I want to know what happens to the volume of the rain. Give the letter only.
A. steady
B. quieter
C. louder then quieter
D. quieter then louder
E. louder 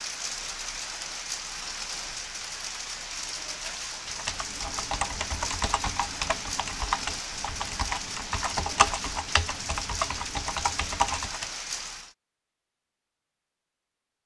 A.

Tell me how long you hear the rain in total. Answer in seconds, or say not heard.
12 s.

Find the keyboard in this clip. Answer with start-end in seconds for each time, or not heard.
4.0-11.5.